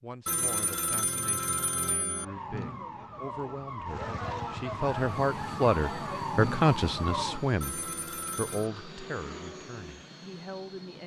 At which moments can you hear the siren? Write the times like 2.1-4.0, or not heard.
2.1-7.5.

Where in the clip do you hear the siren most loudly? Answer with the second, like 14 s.
7 s.